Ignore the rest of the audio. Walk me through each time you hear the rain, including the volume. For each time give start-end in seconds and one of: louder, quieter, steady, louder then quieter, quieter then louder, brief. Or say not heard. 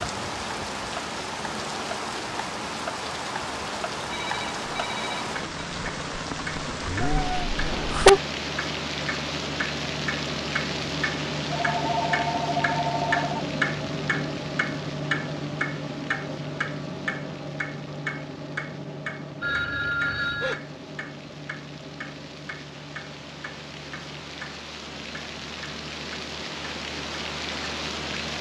0.0-28.3 quieter then louder.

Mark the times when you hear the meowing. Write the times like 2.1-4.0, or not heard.
7.0-8.2.